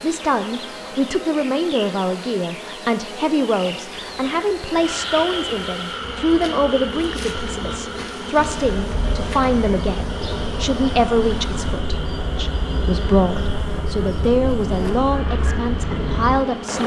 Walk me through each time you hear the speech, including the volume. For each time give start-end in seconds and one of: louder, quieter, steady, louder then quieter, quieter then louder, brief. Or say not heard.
0.0-16.8 steady.